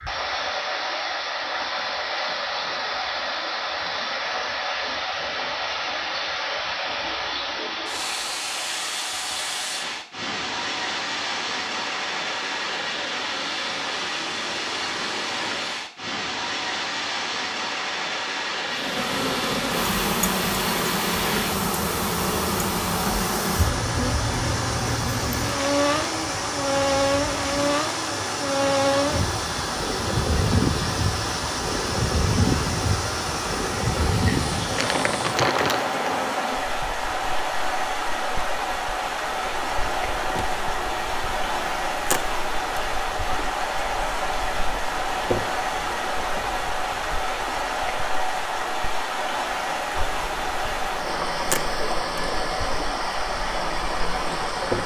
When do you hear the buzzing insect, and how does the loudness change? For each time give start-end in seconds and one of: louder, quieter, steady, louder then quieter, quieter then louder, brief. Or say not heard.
18.7-54.8 quieter.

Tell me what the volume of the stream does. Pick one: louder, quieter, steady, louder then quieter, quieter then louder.
steady.